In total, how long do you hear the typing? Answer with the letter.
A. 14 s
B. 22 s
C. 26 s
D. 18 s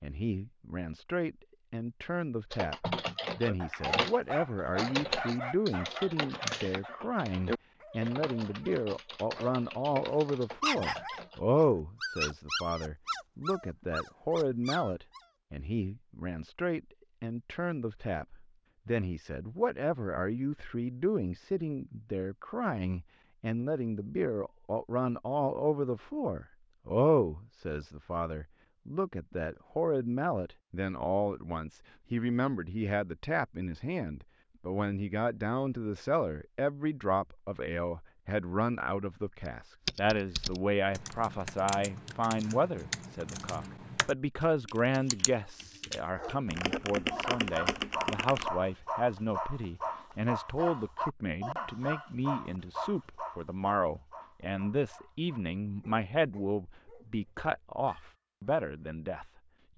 D.